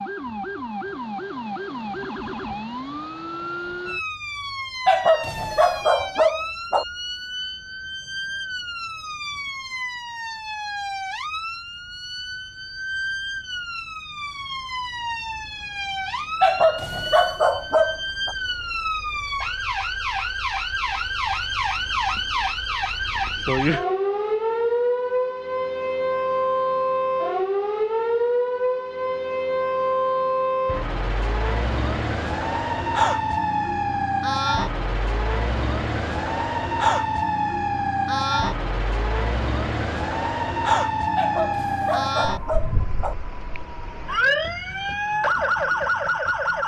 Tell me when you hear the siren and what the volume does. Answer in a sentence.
The siren can be heard from 0.0 to 46.6 s, getting louder.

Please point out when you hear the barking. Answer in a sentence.
You can hear the barking from 4.8 to 6.8 s, from 16.4 to 18.4 s and from 41.1 to 43.1 s.